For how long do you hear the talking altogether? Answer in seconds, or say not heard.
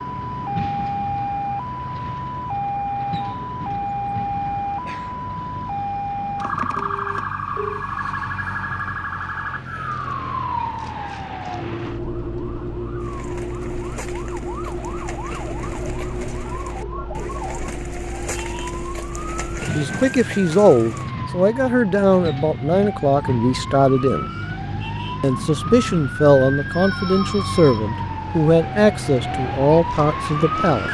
10 s.